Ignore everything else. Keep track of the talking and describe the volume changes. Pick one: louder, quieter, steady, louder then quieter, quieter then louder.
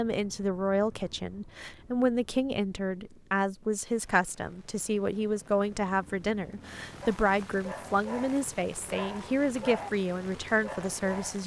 steady.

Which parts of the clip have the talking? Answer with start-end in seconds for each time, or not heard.
0.0-11.4.